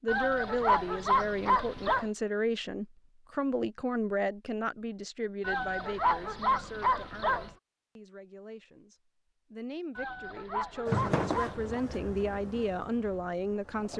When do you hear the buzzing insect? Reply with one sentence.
The buzzing insect can be heard from 10.8 to 13.9 s.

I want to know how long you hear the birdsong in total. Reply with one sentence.
You can't hear the birdsong here.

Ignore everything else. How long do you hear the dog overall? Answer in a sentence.
You can hear the dog for 6 seconds altogether.